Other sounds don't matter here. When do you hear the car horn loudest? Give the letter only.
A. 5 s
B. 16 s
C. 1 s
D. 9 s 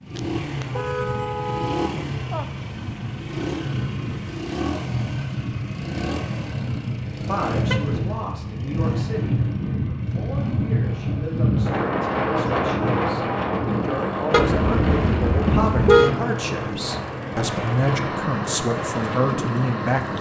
B.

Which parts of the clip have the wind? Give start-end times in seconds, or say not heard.
0.0-20.1.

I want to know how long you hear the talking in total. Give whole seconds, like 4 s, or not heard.
13 s.